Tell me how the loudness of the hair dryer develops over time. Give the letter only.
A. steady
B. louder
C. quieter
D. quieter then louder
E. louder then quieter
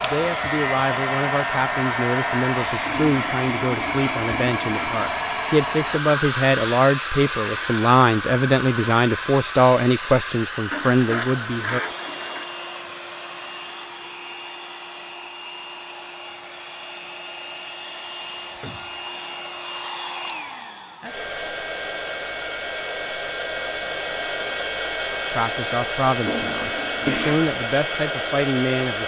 D.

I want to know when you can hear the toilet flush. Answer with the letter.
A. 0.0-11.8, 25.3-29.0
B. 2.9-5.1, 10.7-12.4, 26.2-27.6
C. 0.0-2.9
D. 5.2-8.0
B.